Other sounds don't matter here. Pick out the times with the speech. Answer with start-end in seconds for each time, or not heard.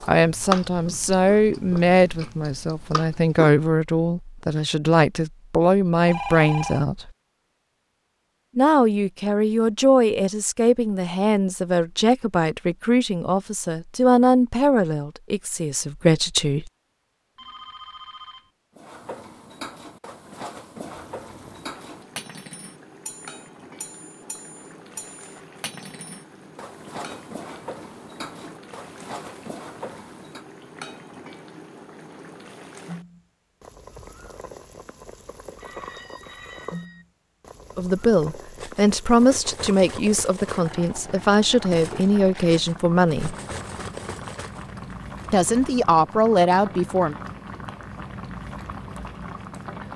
0.1-7.1, 8.6-16.7, 37.8-43.4, 45.3-47.1.